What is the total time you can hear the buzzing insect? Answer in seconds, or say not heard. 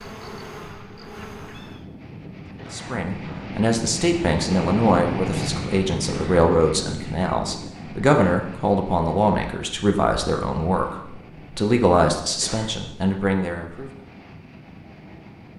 2 s.